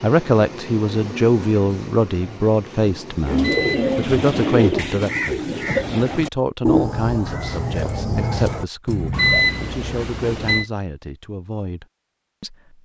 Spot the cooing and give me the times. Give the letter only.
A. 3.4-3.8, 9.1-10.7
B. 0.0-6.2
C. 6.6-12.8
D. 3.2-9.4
D.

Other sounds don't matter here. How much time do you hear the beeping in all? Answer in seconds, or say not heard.
2 s.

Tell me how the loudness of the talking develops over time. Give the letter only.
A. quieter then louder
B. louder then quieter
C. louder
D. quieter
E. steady
D.